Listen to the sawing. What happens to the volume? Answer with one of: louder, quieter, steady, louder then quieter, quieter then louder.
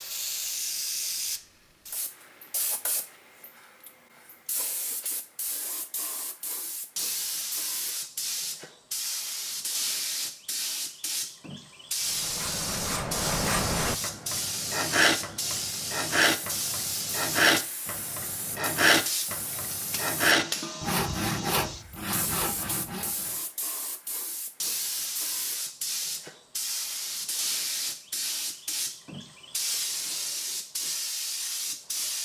louder then quieter.